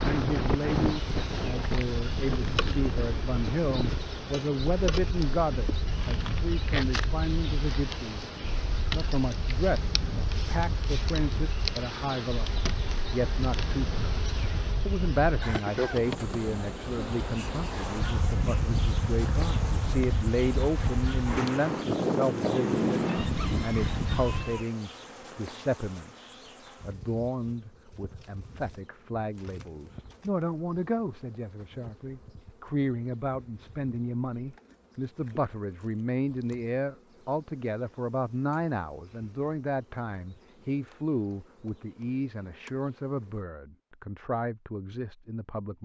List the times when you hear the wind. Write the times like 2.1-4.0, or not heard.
0.0-24.6.